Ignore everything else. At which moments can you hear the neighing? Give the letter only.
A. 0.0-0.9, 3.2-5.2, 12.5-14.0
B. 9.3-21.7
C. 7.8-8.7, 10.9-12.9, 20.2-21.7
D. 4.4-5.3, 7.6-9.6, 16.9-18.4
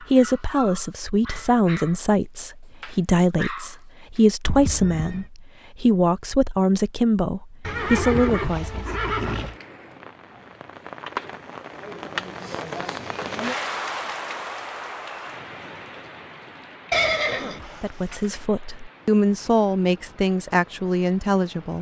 D.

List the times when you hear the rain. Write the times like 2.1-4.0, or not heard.
9.3-21.7.